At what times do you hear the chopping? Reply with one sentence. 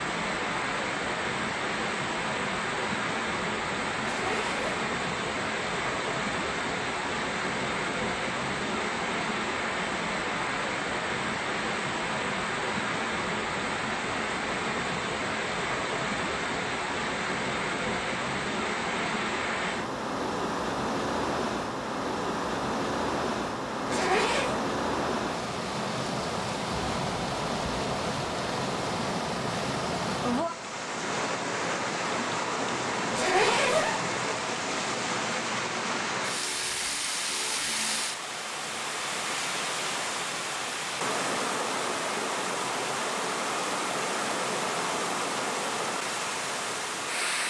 The chopping can't be heard in this clip.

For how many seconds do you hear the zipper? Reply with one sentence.
You can hear the zipper for 2 seconds altogether.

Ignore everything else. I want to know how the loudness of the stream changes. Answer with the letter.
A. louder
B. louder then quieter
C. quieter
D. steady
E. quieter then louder
D.